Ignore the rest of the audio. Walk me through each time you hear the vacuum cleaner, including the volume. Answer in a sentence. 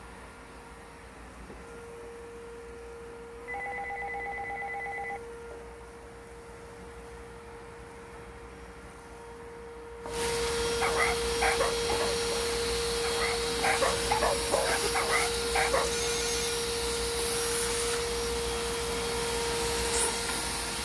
You can hear the vacuum cleaner from 0.0 to 20.8 s, getting louder.